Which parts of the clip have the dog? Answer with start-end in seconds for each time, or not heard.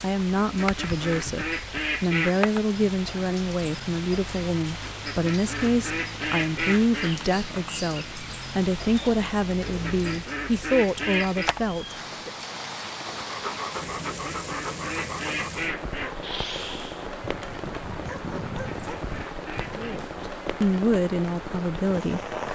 13.2-20.1.